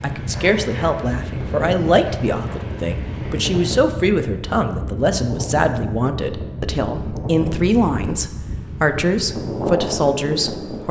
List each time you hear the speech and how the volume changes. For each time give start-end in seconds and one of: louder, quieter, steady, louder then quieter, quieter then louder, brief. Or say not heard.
0.0-10.8 steady.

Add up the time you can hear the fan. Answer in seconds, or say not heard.
11 s.